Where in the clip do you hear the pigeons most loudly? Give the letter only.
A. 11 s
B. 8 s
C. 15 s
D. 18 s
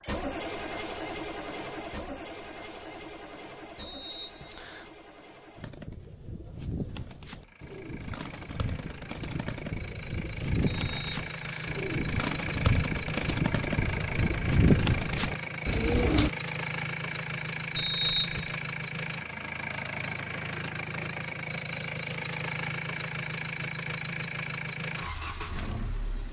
C.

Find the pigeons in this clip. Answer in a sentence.
You can hear the pigeons from 5.5 to 16.3 s.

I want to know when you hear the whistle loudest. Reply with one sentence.
The loudest moment of the whistle is at 18 seconds.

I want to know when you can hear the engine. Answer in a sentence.
The engine can be heard from 0.0 to 26.2 s.